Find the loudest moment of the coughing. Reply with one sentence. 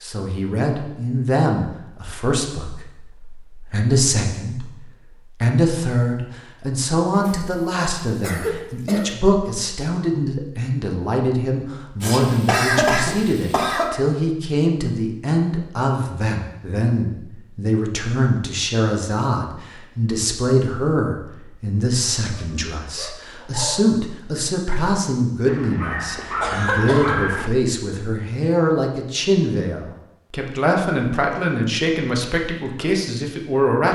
The volume of the coughing peaks at 13 seconds.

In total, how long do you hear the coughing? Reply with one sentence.
You can hear the coughing for 5 seconds altogether.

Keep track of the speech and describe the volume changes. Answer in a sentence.
The loudness of the speech stays about the same.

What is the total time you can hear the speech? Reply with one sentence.
You can hear the speech for 33 seconds altogether.